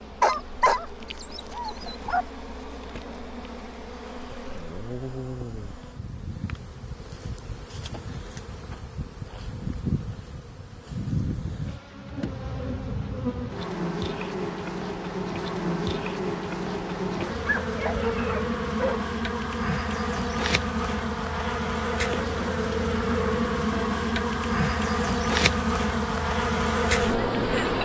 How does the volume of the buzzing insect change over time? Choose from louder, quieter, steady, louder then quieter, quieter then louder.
louder.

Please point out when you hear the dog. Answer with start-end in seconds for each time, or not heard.
0.2-2.2, 17.4-19.0.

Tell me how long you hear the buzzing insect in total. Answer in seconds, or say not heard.
28 s.